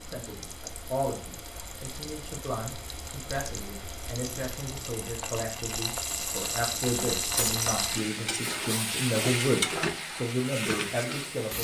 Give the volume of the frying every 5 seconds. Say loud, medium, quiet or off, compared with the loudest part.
medium, loud, loud.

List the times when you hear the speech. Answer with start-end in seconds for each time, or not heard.
0.0-11.5.